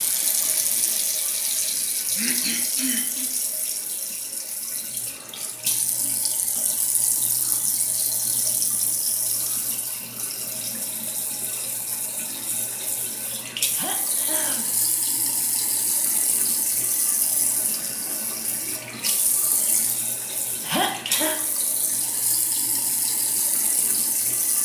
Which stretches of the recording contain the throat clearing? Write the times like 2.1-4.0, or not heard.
1.9-3.2, 13.7-14.7, 20.6-21.4.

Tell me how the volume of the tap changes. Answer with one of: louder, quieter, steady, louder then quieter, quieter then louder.
steady.